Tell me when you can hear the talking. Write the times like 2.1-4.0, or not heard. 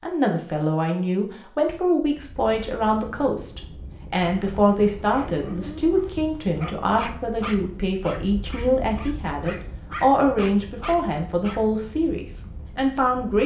0.0-13.4.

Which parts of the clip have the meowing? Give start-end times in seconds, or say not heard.
not heard.